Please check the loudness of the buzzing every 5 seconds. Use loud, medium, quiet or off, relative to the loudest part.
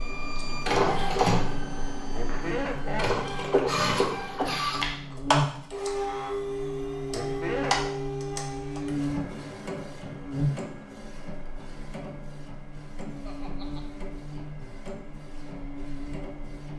medium, loud, loud, medium.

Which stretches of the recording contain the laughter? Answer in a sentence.
The laughter can be heard from 2.1 to 3.2 s, from 7.1 to 8.0 s and from 13.2 to 13.8 s.